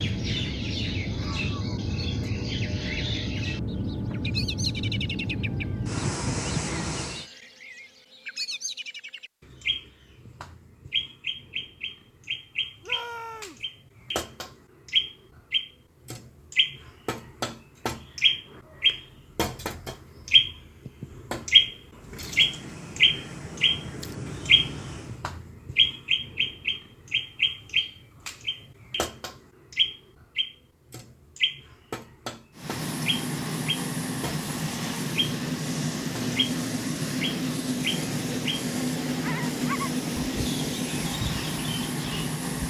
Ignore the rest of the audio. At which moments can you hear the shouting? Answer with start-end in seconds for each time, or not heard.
12.8-13.7.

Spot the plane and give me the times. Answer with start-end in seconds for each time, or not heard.
0.0-7.2, 22.0-25.2, 32.5-42.6.